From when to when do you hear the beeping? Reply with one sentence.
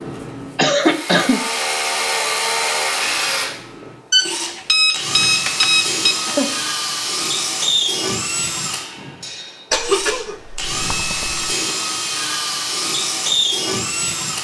You can hear the beeping from 4.1 to 6.2 s.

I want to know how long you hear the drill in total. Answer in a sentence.
The drill can be heard for 14 seconds in total.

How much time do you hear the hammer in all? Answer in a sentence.
The hammer can't be heard in this clip.